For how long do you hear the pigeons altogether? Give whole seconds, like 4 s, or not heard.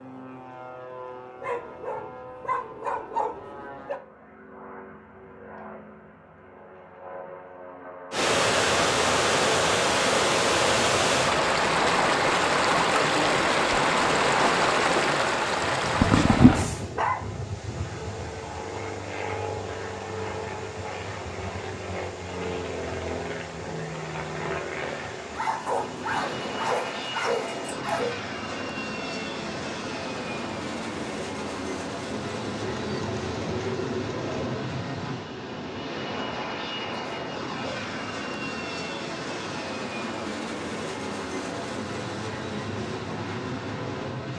2 s.